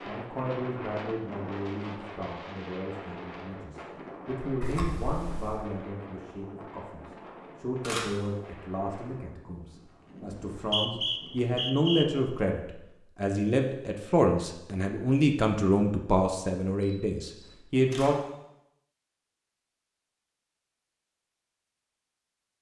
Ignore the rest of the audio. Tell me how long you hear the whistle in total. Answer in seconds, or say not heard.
2 s.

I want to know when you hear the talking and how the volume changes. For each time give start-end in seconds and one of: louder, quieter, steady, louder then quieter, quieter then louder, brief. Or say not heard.
0.1-18.1 louder.